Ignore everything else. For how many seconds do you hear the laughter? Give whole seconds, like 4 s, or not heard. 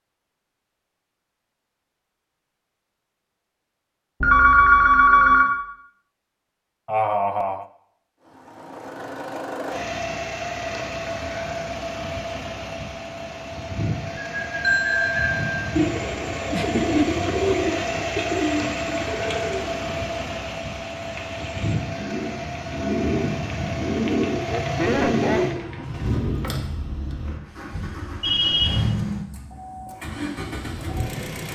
3 s.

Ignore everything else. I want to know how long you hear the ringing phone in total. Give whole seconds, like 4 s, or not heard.
3 s.